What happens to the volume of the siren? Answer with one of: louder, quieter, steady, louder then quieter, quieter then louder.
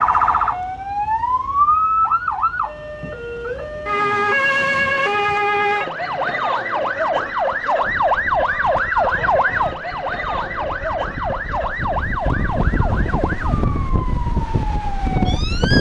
quieter.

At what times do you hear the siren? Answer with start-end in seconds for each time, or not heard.
0.0-15.7.